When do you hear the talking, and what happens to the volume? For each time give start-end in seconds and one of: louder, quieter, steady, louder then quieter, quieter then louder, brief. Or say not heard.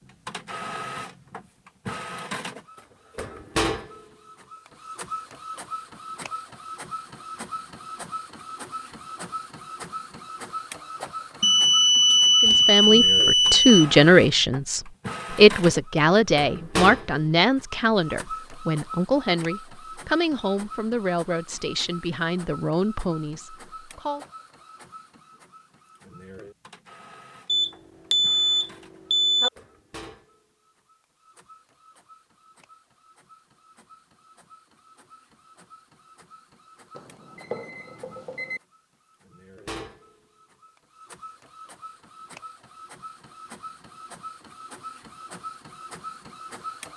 12.4-24.2 quieter.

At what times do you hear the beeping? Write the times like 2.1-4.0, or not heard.
11.4-13.8, 27.4-29.5, 37.0-38.6.